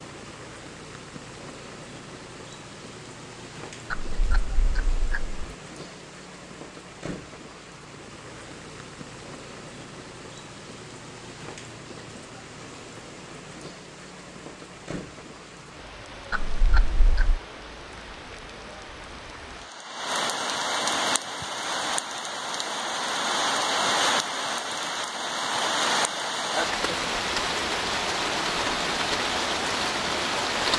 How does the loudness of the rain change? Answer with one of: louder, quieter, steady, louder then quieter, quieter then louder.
louder.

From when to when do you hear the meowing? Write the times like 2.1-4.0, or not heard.
3.9-5.5, 16.3-17.4.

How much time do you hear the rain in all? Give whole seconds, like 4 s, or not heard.
31 s.